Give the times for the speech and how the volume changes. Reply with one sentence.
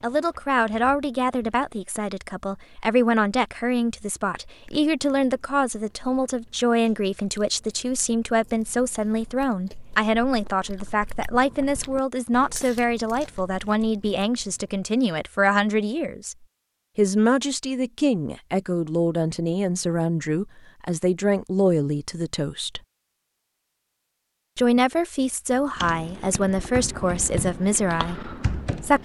The speech can be heard from 0.0 to 16.4 s, at a steady volume; from 16.9 to 22.8 s, at a steady volume; and from 24.6 to 28.9 s, at a steady volume.